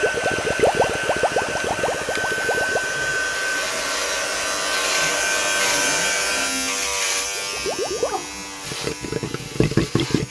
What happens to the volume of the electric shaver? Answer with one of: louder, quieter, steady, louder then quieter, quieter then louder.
louder then quieter.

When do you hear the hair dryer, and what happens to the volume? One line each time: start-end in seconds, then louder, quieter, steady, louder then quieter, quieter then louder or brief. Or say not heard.
0.0-6.5 steady.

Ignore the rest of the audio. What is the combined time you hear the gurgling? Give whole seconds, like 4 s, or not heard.
6 s.